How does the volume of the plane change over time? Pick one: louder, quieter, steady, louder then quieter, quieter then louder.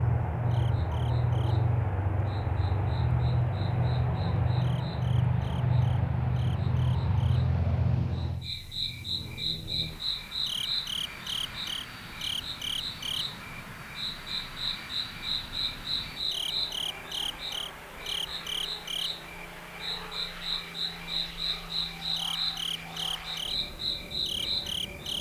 quieter.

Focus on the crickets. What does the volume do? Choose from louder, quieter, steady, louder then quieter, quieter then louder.
louder.